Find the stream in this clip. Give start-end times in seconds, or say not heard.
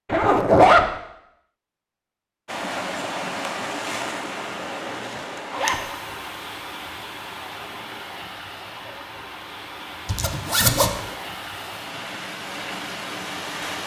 2.5-13.8.